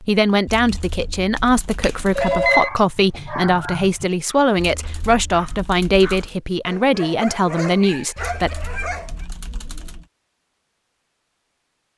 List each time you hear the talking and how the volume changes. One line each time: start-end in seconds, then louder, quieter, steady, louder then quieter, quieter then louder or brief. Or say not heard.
0.0-8.6 steady.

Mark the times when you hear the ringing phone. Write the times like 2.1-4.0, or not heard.
1.8-2.7.